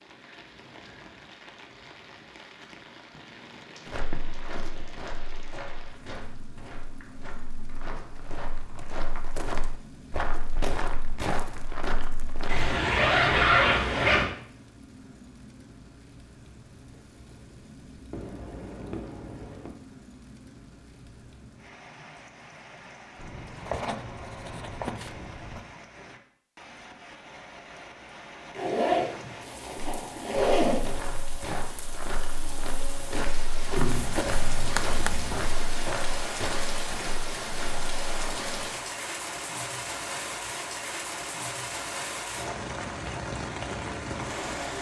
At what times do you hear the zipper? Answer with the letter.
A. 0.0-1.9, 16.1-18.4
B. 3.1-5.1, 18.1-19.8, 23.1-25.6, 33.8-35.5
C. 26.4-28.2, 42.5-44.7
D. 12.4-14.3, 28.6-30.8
D.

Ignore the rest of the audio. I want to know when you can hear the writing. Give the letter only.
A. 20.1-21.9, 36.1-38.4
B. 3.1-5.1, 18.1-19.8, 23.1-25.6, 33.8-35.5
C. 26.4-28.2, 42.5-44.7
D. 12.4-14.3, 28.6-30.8
B.